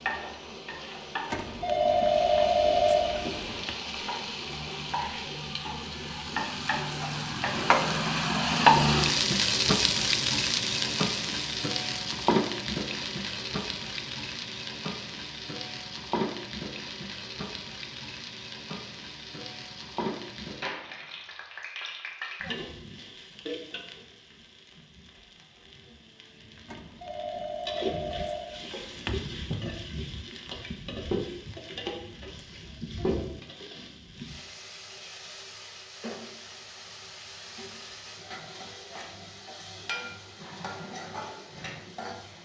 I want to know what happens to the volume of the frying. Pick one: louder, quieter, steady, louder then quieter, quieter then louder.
quieter.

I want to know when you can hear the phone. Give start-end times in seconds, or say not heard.
1.3-3.8, 26.7-29.2.